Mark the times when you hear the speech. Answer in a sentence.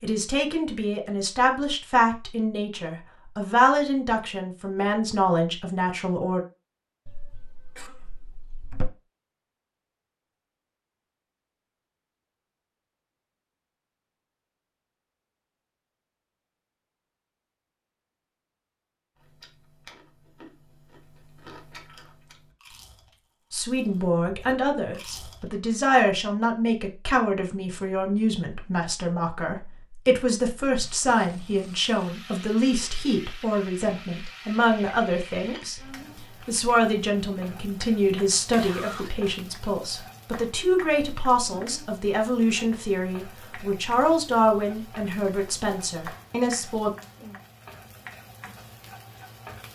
You can hear the speech from 0.0 to 6.4 s and from 23.5 to 46.9 s.